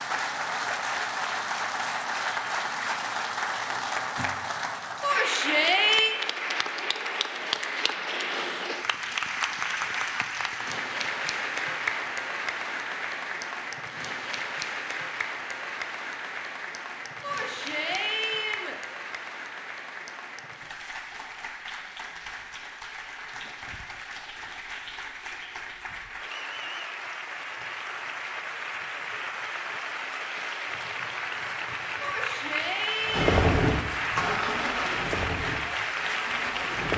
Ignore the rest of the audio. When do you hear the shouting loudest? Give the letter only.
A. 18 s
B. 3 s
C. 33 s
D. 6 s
D.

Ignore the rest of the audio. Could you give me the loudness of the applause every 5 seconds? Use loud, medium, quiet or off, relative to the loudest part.
loud, loud, loud, medium, medium, medium, loud, loud.